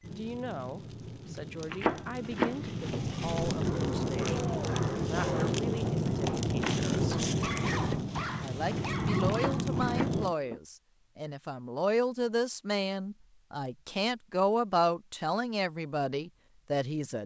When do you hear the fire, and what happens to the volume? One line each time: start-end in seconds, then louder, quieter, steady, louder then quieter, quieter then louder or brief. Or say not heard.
0.0-10.3 louder.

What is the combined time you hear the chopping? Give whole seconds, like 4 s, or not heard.
3 s.